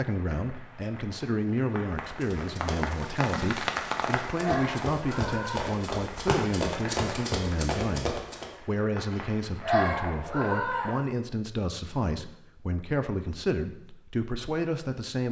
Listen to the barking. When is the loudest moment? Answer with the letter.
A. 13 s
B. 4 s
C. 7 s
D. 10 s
D.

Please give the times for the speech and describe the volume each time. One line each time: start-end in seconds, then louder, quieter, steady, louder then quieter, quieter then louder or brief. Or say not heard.
0.0-15.2 steady.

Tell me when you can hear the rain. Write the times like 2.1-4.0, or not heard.
0.0-10.9.